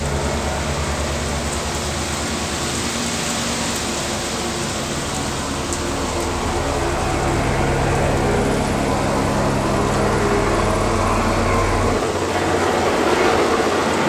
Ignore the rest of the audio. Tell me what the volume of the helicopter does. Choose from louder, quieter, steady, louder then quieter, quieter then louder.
louder.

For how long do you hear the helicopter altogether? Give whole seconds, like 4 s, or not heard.
14 s.